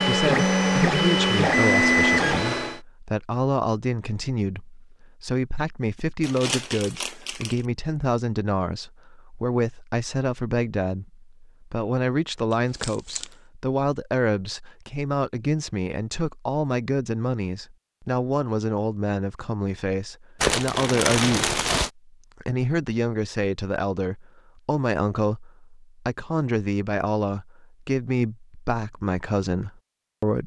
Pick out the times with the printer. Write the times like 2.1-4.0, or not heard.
0.0-2.8.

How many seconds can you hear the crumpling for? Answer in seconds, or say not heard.
4 s.